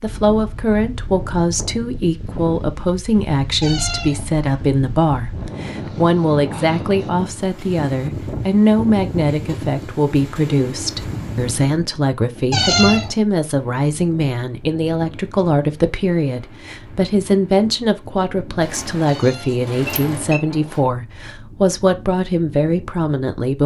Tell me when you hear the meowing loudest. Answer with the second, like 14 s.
13 s.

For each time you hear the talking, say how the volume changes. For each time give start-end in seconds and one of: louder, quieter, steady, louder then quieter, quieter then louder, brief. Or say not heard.
0.0-23.6 steady.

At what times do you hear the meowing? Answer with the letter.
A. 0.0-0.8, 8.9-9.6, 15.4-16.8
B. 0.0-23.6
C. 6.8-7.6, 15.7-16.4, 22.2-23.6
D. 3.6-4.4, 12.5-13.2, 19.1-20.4
D.